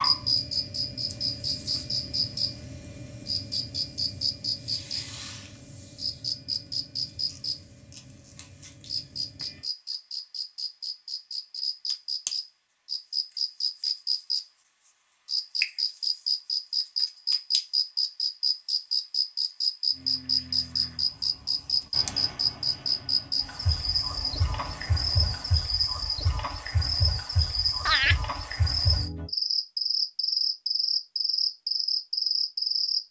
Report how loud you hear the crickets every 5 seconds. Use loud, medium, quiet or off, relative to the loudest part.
loud, medium, medium, loud, loud, loud, loud.